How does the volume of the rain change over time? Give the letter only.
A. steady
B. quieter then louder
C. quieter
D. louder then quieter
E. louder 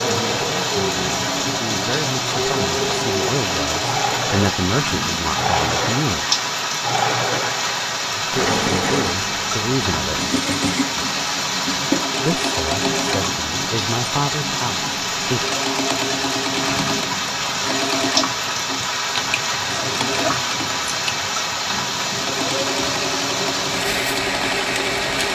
A.